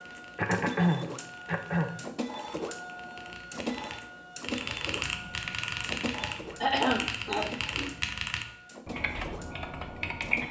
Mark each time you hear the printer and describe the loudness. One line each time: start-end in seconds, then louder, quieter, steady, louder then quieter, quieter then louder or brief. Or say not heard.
0.0-10.4 quieter.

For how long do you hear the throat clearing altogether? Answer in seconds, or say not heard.
3 s.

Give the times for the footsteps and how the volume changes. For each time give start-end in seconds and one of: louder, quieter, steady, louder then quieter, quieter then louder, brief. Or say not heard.
not heard.